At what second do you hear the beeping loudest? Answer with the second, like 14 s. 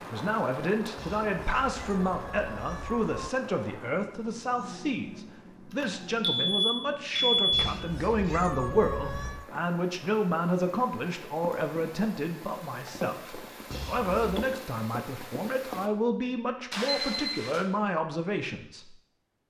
7 s.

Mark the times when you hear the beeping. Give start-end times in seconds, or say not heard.
5.7-7.5, 16.7-17.6.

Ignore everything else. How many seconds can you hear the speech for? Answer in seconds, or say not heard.
19 s.